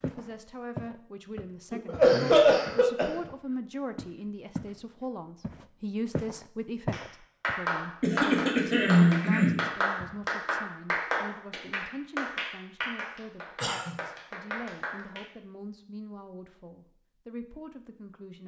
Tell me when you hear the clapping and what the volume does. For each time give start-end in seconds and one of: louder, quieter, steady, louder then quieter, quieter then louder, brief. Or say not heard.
6.9-15.2 quieter.